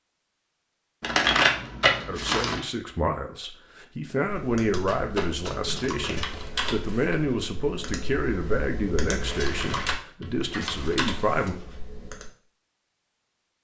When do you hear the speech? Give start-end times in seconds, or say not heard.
2.0-11.6.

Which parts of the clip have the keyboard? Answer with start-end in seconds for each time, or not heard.
4.2-12.3.